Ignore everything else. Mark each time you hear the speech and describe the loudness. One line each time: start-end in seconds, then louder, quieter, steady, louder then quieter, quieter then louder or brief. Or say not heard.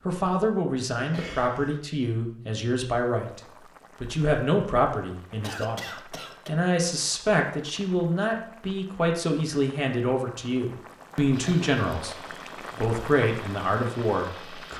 0.0-14.7 steady.